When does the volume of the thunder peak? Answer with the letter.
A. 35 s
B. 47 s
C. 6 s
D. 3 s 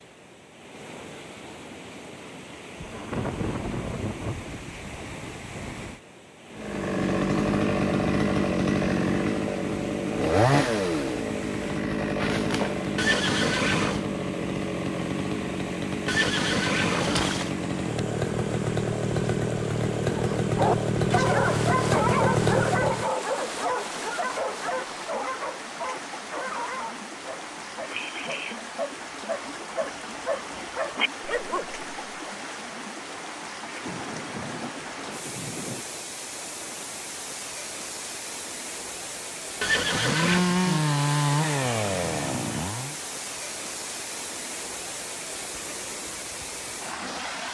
D.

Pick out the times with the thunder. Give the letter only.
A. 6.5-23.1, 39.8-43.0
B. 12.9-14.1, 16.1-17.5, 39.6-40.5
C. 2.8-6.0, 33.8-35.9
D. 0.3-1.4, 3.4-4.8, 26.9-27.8
C.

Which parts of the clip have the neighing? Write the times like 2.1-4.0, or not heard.
12.9-14.1, 16.1-17.5, 39.6-40.5.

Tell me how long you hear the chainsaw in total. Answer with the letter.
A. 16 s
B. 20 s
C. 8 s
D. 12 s
B.